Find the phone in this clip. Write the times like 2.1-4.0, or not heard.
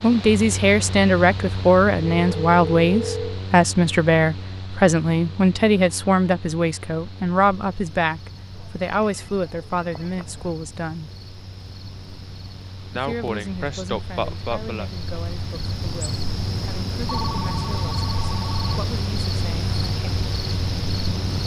2.0-3.4, 8.6-10.6, 17.1-18.8.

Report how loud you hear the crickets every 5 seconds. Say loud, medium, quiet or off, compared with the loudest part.
off, quiet, quiet, loud, loud.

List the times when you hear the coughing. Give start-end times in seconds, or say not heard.
12.9-14.9.